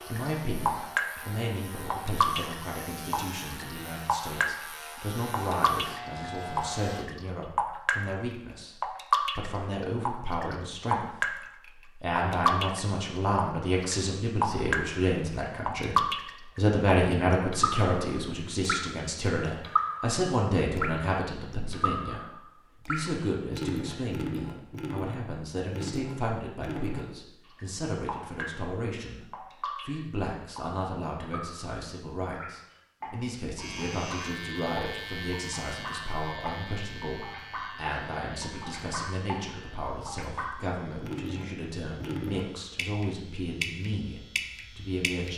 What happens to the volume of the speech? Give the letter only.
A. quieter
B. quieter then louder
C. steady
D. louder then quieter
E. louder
D.